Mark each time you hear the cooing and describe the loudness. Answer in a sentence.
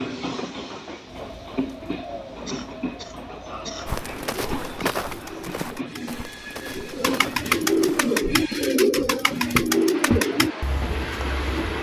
The cooing can be heard from 1.1 to 10.6 s, getting louder.